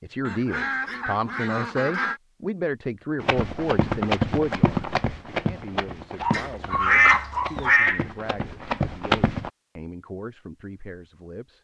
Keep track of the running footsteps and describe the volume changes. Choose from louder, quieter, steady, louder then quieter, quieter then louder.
quieter then louder.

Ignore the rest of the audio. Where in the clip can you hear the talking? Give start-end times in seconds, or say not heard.
0.0-11.5.